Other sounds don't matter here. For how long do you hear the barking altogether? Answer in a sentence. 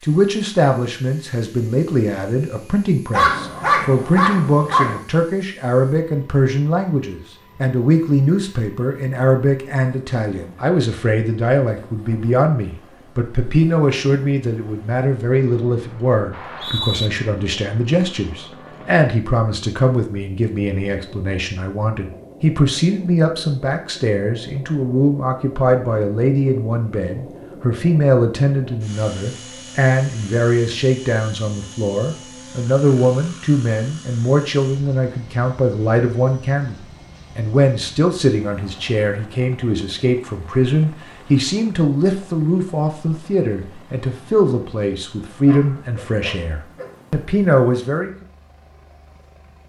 The barking can be heard for 3 seconds in total.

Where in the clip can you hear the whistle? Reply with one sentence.
You can hear the whistle from 16.3 to 17.1 s.